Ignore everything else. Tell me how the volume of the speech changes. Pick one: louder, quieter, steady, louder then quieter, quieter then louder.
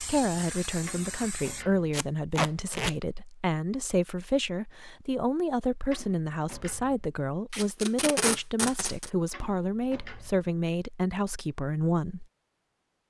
steady.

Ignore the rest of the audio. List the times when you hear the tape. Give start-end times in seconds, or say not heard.
1.9-3.0, 7.5-9.1.